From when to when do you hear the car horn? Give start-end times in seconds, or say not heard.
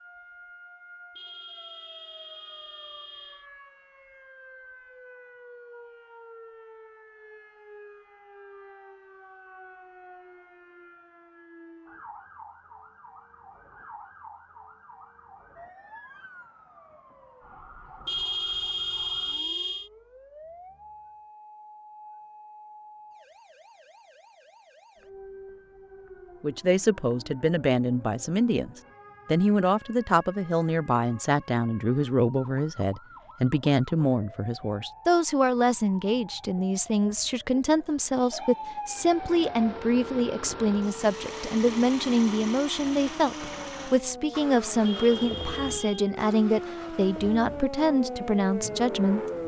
1.1-3.5, 18.1-19.9, 44.9-46.1.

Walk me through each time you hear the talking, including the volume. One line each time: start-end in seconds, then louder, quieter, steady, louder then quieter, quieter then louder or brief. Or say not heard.
26.4-49.2 steady.